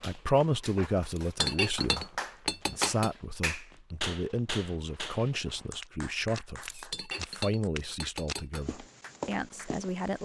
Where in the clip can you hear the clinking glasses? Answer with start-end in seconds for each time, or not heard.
1.4-3.1, 6.9-8.7.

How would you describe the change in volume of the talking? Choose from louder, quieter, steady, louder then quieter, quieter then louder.
quieter.